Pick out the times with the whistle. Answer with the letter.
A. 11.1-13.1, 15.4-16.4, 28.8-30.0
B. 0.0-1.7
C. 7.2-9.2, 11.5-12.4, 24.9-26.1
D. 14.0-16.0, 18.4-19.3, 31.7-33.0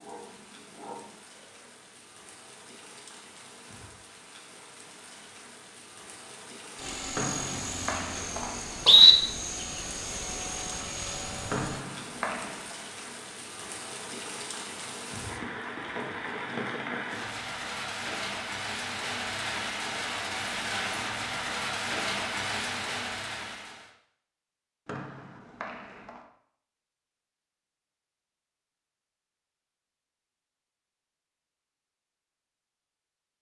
C.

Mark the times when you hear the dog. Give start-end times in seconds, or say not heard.
0.0-1.7.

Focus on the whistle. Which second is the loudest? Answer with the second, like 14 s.
9 s.